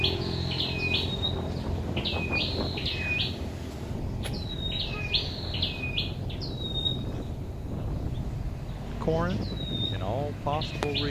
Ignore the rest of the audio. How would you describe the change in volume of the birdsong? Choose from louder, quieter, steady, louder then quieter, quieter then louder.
quieter.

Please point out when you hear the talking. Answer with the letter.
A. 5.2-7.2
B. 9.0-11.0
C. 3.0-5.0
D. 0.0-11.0
B.